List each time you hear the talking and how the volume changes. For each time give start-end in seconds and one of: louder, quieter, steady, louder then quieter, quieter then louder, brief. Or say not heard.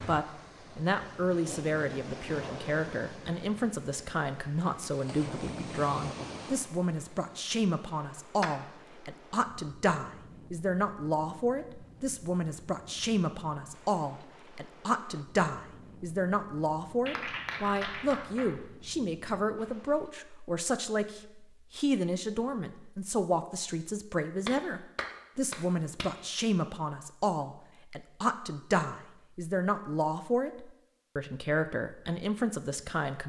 0.0-33.2 steady.